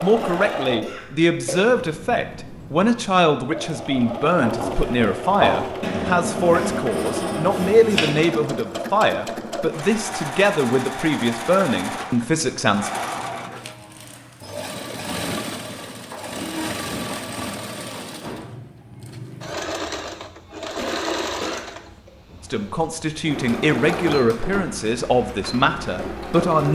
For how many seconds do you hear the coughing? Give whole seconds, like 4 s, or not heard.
3 s.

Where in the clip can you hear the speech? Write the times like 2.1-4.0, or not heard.
0.0-12.9, 22.5-26.6.